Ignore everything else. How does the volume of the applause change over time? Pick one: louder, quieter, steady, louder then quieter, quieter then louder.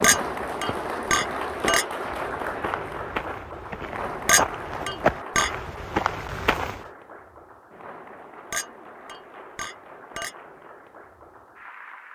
quieter.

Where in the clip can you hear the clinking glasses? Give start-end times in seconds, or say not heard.
0.0-1.9, 4.2-5.5, 8.5-10.3.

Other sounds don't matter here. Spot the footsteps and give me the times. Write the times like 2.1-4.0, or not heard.
0.0-6.8.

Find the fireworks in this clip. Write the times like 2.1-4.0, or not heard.
not heard.